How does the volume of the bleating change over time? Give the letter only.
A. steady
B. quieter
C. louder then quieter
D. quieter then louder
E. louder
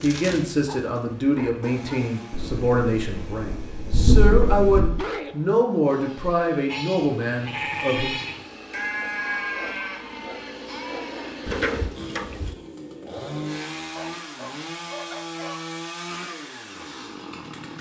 D.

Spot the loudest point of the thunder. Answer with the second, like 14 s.
4 s.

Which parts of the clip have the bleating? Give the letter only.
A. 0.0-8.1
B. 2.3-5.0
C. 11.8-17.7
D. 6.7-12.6
D.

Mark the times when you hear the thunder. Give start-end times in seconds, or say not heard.
2.3-5.0.